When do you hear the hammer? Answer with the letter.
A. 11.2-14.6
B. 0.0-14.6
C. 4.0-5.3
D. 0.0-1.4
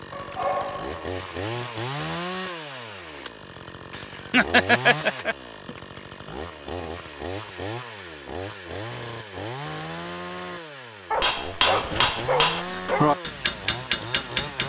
A.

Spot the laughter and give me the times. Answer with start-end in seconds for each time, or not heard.
4.0-5.3.